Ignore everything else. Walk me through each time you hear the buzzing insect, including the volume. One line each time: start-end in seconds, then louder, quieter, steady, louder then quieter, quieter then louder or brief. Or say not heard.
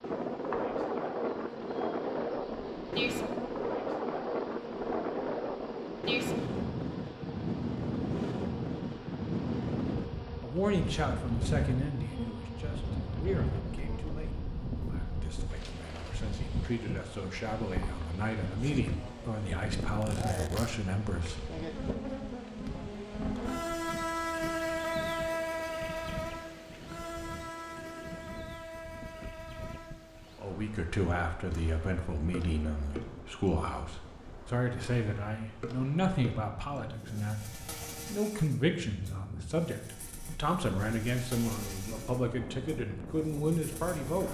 0.0-44.2 louder then quieter.